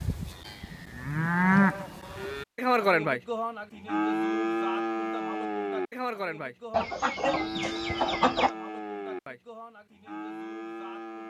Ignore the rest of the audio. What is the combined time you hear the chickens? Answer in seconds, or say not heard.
2 s.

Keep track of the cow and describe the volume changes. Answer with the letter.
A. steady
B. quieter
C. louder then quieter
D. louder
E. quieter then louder
B.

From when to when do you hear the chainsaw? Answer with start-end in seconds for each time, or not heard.
not heard.